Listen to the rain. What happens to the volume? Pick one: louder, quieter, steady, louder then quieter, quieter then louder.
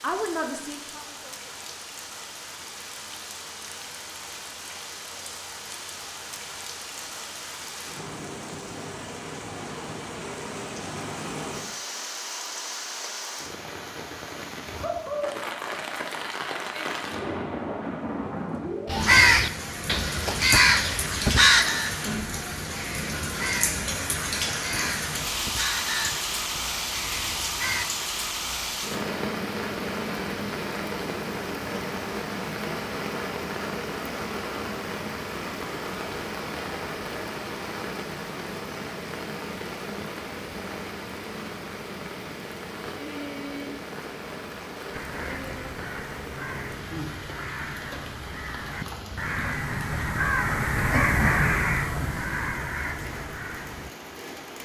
louder then quieter.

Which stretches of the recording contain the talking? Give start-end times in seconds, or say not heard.
0.0-1.6.